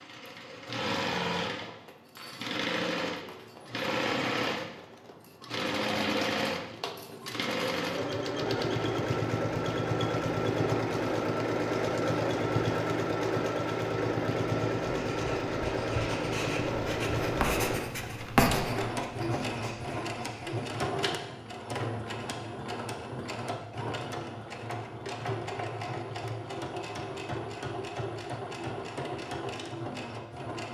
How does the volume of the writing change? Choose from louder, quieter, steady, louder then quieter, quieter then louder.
louder then quieter.